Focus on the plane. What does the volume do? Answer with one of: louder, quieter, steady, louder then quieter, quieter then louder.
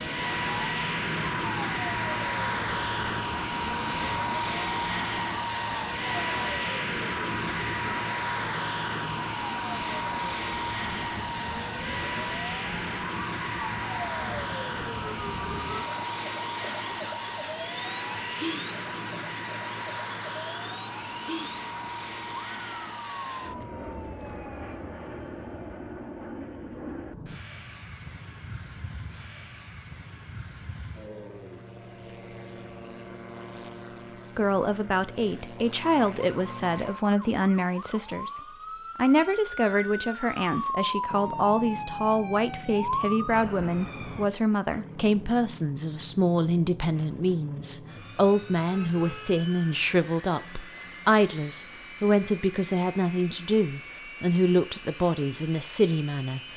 quieter.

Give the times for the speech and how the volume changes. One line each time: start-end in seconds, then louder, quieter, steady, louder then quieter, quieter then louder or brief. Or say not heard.
34.4-56.4 steady.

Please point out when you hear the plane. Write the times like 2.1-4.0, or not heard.
0.0-56.5.